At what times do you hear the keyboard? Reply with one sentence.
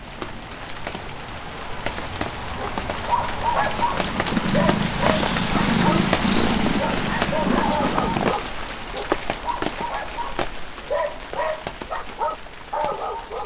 You can't hear the keyboard here.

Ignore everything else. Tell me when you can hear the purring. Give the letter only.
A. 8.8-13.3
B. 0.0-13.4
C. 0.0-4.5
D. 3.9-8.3
D.